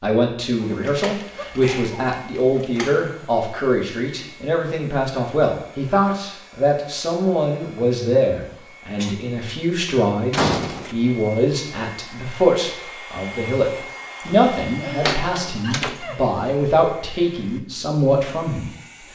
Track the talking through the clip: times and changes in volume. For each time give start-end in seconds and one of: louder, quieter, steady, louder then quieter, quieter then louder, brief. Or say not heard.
0.0-18.7 steady.